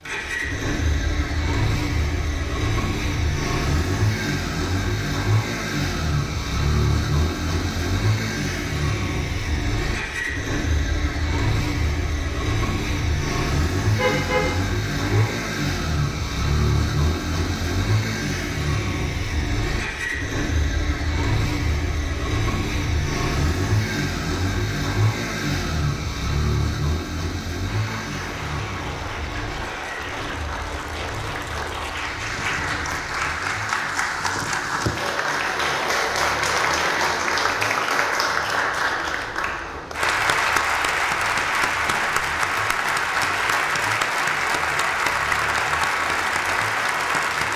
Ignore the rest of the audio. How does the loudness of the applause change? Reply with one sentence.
The loudness of the applause goes up.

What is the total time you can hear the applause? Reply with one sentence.
You can hear the applause for 20 seconds altogether.